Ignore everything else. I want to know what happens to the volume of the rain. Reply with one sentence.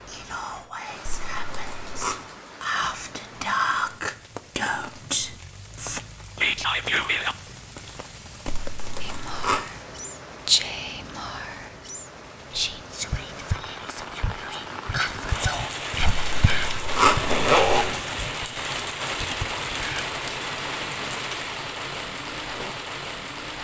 The volume of the rain goes up.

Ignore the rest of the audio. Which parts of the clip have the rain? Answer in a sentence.
You can hear the rain from 0.0 to 23.5 s.